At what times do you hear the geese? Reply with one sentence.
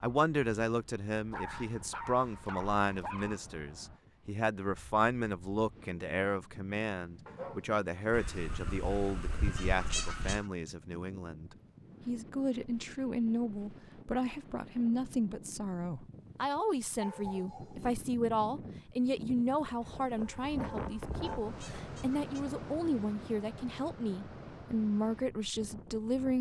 The geese can be heard from 8.1 to 10.4 s and from 19.8 to 22.5 s.